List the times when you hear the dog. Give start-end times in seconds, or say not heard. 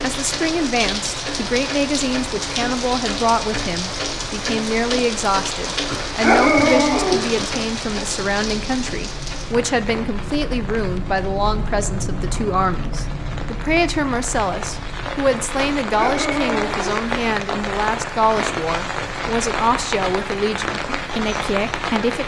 5.8-7.5, 15.8-17.0.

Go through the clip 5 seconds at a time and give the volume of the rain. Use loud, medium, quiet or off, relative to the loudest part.
loud, loud, medium, loud, loud.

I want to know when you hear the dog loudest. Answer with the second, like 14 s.
6 s.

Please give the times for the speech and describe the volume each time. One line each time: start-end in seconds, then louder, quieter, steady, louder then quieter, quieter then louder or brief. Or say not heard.
0.0-22.2 steady.